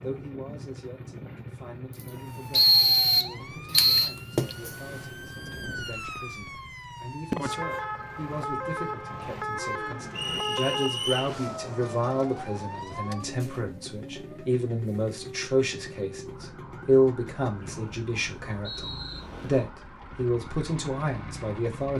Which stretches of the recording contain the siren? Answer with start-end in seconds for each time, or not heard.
1.9-21.8.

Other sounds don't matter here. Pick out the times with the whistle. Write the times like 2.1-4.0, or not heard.
2.5-4.1, 10.2-11.3, 17.6-19.2.